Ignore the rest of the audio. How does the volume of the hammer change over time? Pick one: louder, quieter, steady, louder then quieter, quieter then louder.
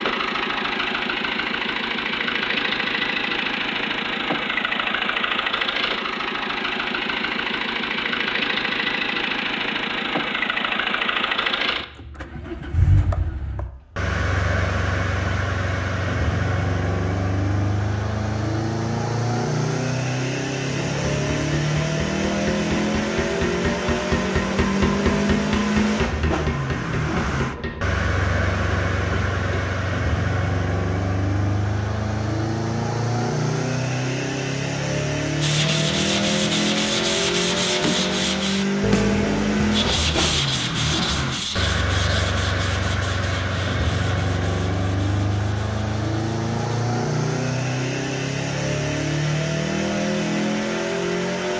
louder then quieter.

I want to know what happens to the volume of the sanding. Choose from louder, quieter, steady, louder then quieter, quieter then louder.
quieter.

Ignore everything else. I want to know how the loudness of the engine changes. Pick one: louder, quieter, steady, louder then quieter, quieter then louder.
steady.